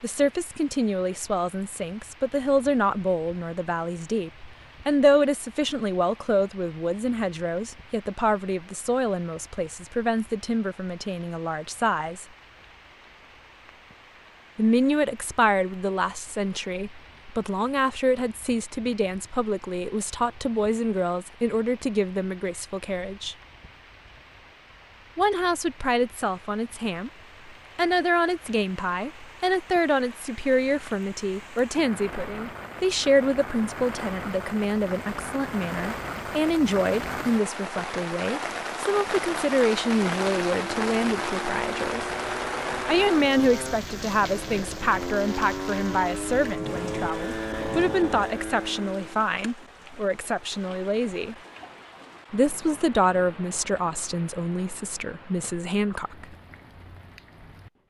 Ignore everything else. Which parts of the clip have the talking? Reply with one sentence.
The talking can be heard from 0.0 to 12.2 s, from 14.6 to 23.4 s, from 25.1 to 27.1 s, from 27.8 to 42.0 s, from 42.9 to 51.4 s and from 52.3 to 56.2 s.